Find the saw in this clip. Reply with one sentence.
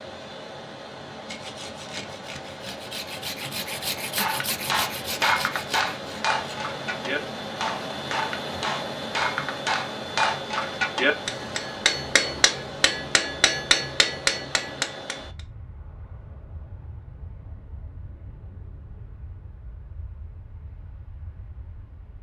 You can hear the saw from 1.2 to 6.7 s.